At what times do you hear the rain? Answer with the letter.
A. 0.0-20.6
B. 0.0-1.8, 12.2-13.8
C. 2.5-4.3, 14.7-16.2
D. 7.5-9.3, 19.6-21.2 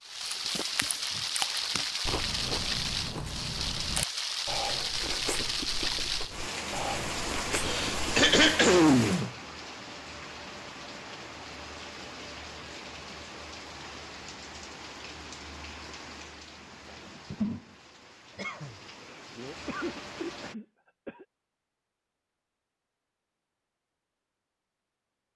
A.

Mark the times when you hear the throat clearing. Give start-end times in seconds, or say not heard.
7.5-9.3, 19.6-21.2.